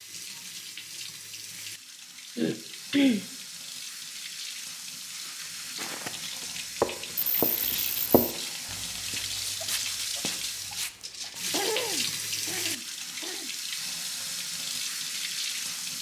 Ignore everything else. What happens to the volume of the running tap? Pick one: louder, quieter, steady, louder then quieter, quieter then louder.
louder.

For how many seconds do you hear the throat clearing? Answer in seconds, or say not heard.
4 s.